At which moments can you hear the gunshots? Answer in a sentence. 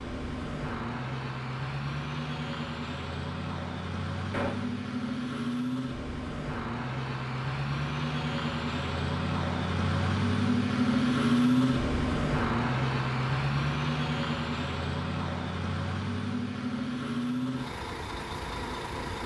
The gunshots can be heard from 4.3 to 4.8 s.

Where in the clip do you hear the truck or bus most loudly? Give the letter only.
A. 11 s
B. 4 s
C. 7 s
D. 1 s
A.